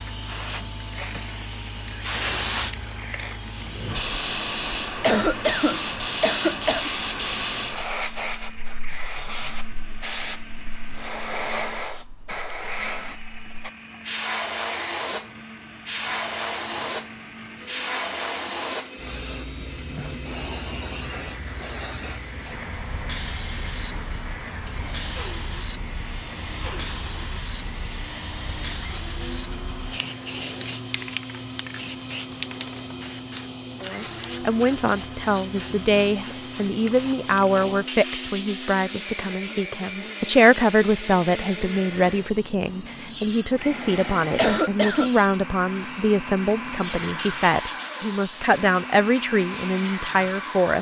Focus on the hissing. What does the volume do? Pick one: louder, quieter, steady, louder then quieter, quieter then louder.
quieter.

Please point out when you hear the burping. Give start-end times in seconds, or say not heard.
not heard.